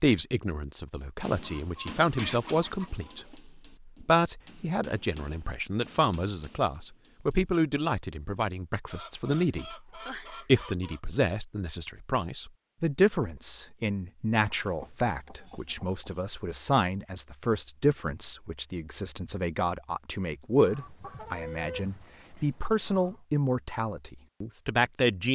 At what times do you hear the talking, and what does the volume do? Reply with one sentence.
The talking can be heard from 0.0 to 25.3 s, at a steady volume.